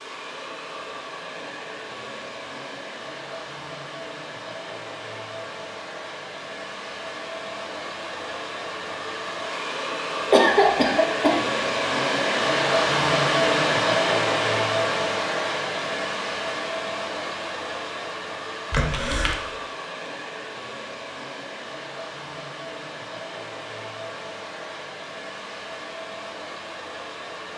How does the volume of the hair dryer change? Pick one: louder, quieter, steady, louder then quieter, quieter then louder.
louder then quieter.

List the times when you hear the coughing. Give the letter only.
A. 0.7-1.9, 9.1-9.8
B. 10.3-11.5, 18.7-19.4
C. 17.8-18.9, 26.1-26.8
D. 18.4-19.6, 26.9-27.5
B.